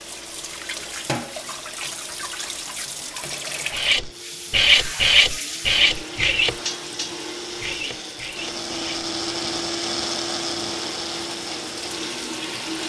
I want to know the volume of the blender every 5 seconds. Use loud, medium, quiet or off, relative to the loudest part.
quiet, loud, loud.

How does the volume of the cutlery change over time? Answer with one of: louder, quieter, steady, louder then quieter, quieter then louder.
quieter.